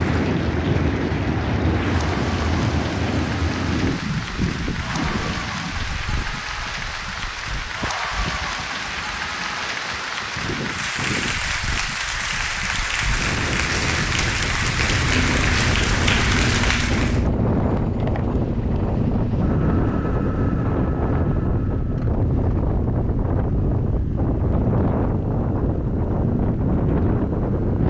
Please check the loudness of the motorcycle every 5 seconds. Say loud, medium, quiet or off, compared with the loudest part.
off, off, off, loud, loud, loud.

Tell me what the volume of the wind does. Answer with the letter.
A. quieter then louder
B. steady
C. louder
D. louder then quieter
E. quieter
A.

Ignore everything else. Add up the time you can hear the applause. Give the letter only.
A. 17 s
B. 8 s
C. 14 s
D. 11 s
A.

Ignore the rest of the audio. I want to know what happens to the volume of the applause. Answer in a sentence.
The volume of the applause goes up.